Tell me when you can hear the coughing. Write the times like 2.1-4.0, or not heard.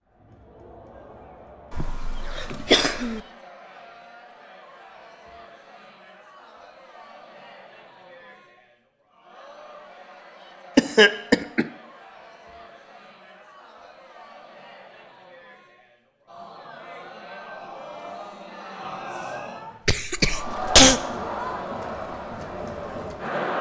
1.7-3.2, 10.8-11.7, 19.9-21.0.